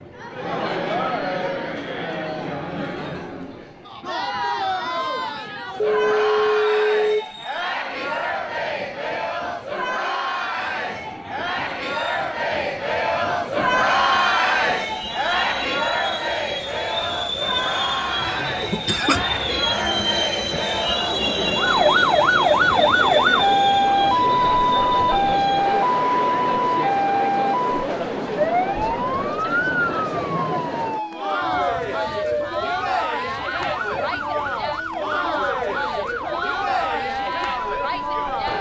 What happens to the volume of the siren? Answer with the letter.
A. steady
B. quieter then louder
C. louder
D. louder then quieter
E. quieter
E.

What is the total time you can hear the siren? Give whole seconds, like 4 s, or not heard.
17 s.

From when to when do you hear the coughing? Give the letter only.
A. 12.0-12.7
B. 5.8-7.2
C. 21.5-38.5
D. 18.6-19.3
D.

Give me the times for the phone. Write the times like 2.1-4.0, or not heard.
5.8-7.2.